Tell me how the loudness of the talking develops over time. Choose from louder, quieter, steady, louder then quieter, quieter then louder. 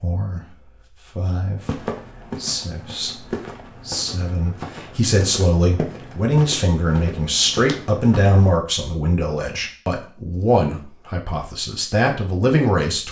louder.